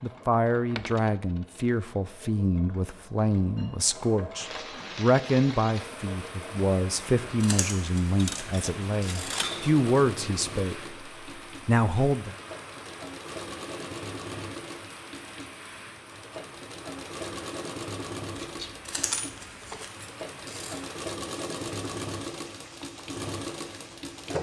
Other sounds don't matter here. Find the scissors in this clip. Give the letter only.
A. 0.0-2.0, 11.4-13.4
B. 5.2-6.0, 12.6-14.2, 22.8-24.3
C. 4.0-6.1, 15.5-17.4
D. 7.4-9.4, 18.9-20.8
D.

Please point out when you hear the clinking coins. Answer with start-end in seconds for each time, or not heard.
0.8-1.6, 8.2-9.8, 18.4-19.9.